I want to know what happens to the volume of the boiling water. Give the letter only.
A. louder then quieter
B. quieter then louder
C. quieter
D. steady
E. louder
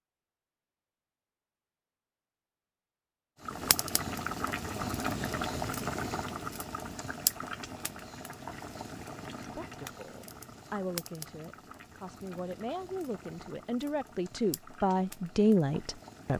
C.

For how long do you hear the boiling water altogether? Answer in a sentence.
The boiling water can be heard for 13 seconds in total.